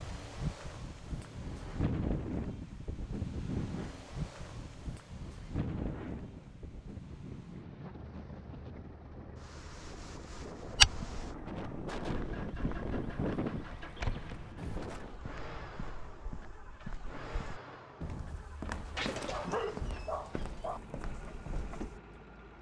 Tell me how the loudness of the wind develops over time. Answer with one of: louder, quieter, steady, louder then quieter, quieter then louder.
quieter then louder.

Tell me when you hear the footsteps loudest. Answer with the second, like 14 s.
11 s.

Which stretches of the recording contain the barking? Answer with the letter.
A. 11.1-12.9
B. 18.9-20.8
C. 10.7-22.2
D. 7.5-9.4
B.